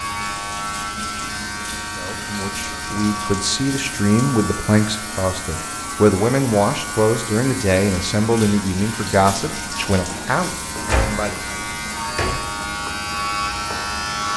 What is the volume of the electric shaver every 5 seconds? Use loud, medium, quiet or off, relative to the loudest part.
loud, medium, loud.